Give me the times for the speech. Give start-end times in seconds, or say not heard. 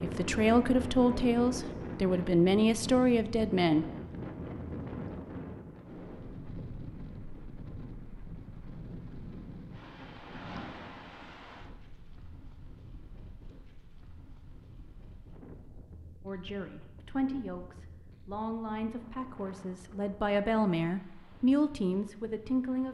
0.0-3.9, 16.2-22.8.